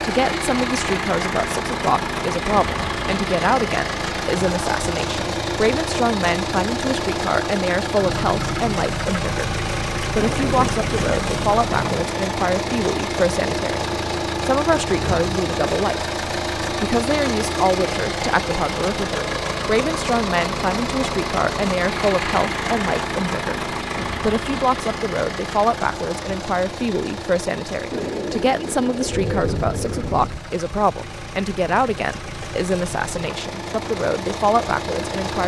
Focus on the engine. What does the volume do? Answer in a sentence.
The volume of the engine goes down.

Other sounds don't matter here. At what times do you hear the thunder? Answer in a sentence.
The thunder can be heard from 10.2 to 12.2 s and from 29.0 to 30.4 s.